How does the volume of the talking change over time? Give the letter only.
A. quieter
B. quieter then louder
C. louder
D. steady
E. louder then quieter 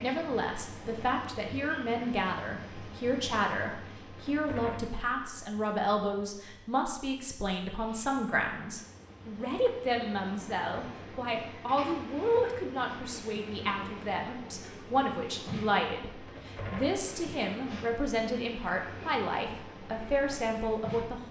D.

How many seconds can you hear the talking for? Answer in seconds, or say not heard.
21 s.